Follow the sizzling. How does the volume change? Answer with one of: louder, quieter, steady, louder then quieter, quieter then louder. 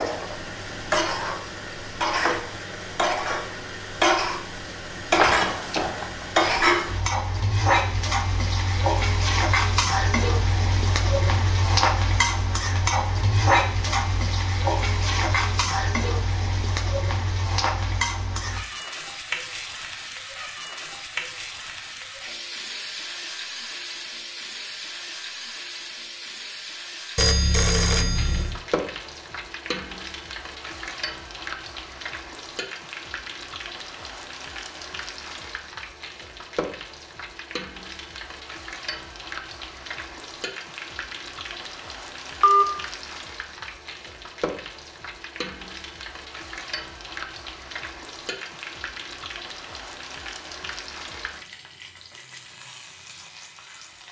quieter.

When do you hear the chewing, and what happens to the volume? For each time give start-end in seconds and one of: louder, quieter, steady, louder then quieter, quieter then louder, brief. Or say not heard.
not heard.